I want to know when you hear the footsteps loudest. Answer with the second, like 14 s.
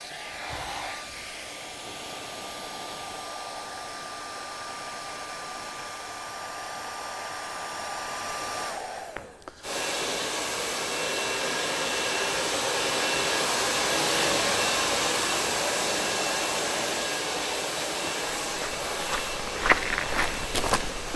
20 s.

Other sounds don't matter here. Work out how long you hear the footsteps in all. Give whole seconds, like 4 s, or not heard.
3 s.